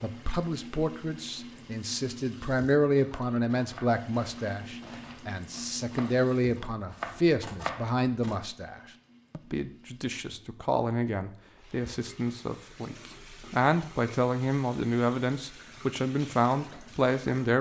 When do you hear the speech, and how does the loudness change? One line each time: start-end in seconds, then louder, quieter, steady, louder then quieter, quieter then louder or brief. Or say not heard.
0.0-17.5 steady.